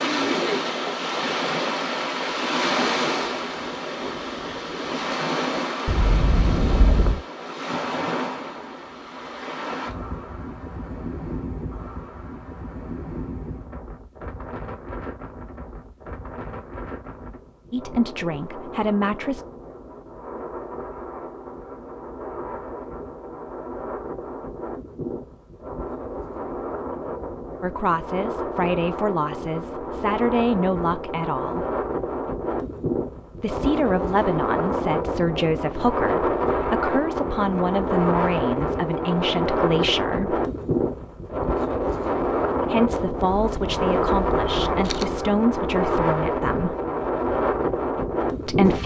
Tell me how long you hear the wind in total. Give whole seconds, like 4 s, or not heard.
49 s.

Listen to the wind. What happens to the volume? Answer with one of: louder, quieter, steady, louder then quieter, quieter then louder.
quieter then louder.